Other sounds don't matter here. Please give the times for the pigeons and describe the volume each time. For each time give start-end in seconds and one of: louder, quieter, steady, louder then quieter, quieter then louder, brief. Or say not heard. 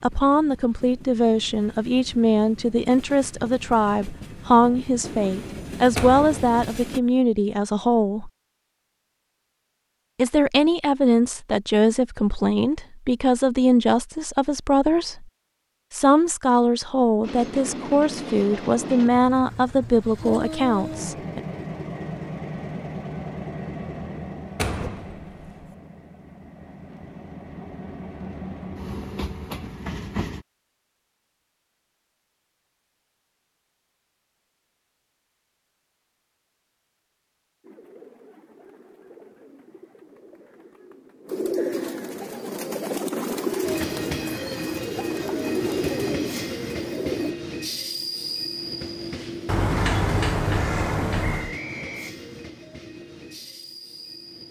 37.6-47.4 louder.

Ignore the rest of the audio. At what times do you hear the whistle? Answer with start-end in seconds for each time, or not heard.
51.2-52.1.